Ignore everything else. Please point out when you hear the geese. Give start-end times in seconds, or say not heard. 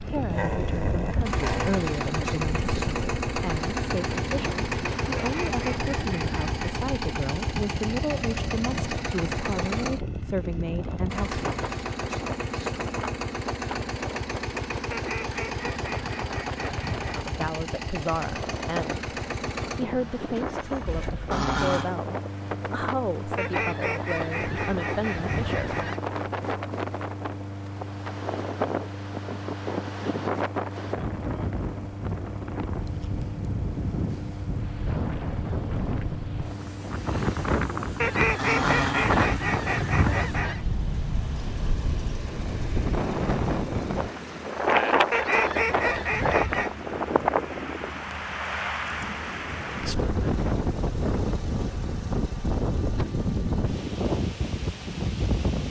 5.2-6.8, 14.9-17.3, 23.4-26.0, 38.0-40.6, 45.1-46.7.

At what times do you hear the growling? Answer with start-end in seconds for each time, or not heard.
0.3-1.8, 21.3-21.9, 38.4-39.2.